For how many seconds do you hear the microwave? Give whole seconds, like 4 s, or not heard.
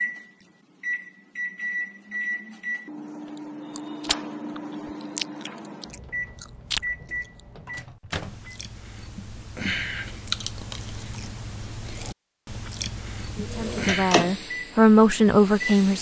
11 s.